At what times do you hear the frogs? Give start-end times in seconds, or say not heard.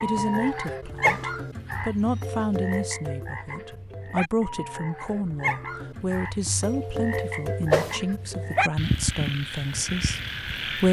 0.0-10.8.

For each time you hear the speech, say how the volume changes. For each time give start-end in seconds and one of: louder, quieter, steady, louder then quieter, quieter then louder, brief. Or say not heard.
0.0-10.8 steady.